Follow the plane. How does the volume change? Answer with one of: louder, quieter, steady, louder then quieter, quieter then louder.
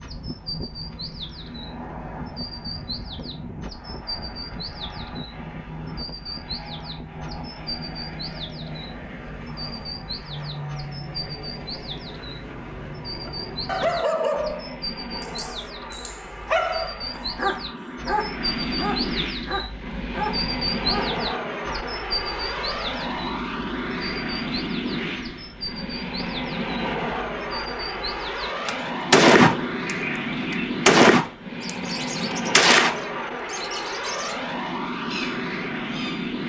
louder.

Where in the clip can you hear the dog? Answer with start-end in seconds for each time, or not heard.
13.2-21.1.